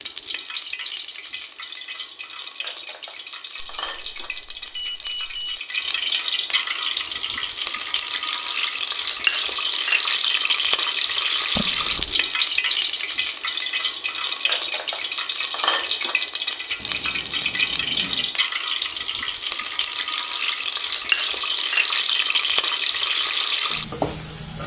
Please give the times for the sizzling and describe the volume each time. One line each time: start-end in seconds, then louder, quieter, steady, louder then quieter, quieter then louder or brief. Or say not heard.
0.0-24.6 louder.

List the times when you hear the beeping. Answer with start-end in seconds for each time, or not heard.
3.6-5.6, 11.6-12.3, 16.8-18.3.